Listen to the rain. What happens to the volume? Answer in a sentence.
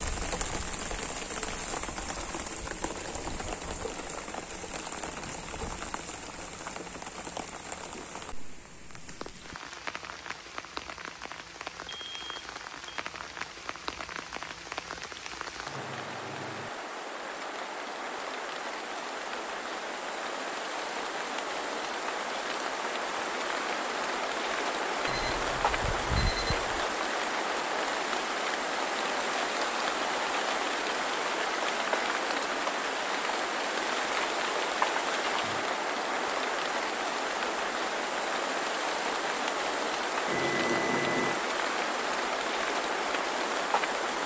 The loudness of the rain goes up.